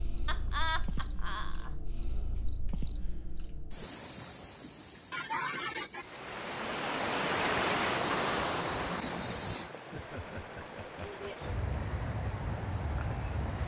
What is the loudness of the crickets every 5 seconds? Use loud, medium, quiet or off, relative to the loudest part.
quiet, loud, loud.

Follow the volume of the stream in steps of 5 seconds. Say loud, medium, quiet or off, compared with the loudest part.
off, loud, quiet.